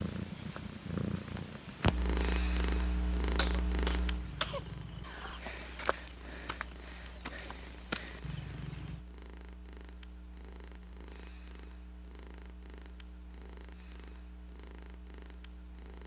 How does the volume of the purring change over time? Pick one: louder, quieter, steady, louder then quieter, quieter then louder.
quieter.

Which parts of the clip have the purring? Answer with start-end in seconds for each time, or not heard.
0.0-16.0.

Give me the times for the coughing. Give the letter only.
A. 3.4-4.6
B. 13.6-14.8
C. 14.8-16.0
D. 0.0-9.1
A.